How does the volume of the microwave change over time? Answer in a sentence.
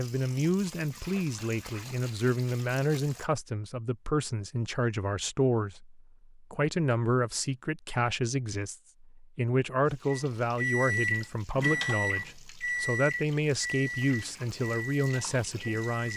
The volume of the microwave goes down.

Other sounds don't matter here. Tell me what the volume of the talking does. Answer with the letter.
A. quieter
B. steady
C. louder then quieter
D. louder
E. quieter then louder
B.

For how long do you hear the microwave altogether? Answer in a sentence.
You can hear the microwave for 6 seconds altogether.